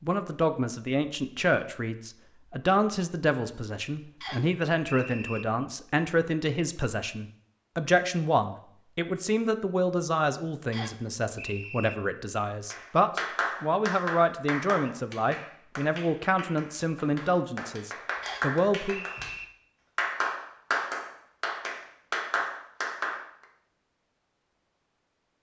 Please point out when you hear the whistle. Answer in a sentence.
The whistle can be heard from 4.2 to 5.5 s, from 10.7 to 11.9 s and from 18.2 to 19.4 s.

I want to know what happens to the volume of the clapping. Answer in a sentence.
The volume of the clapping goes down, then up.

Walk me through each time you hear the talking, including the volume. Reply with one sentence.
You can hear the talking from 0.0 to 19.1 s, at a steady volume.